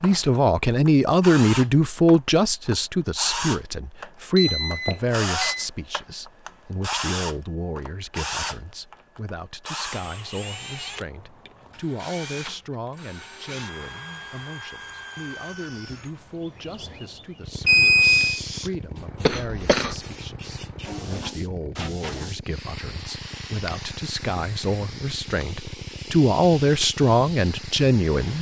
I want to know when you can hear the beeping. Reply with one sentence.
The beeping can be heard from 4.3 to 5.7 s and from 17.6 to 18.4 s.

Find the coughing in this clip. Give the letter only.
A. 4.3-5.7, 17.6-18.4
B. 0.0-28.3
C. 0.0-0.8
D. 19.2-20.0
D.